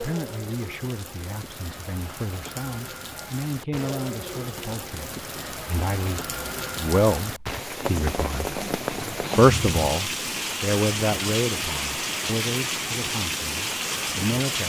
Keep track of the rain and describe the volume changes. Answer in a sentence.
The volume of the rain goes up.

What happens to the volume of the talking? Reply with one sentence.
The volume of the talking goes up, then down.